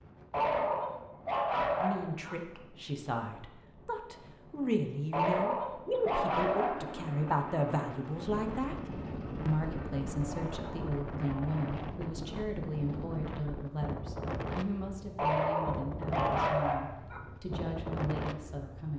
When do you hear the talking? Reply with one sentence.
The talking can be heard from 1.8 to 8.8 s and from 9.4 to 18.9 s.